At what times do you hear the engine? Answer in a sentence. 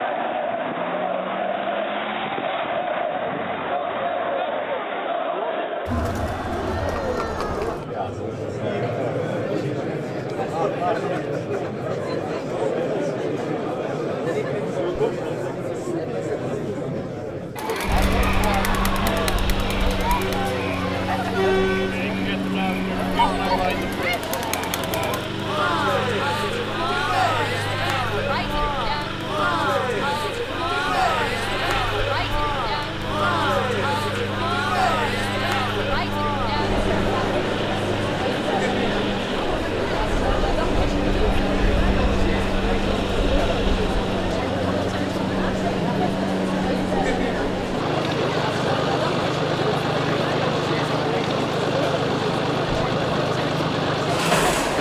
You can hear the engine from 17.8 to 54.7 s.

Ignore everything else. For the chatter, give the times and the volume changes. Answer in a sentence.
The chatter can be heard from 0.0 to 54.7 s, at a steady volume.